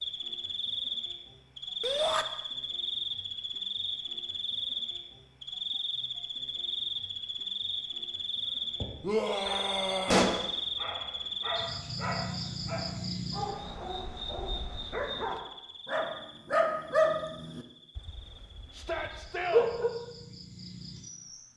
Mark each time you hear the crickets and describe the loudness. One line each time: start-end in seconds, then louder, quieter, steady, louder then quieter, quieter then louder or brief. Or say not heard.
0.0-21.5 quieter.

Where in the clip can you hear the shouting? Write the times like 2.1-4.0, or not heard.
1.8-2.2, 9.0-10.2, 18.7-19.7.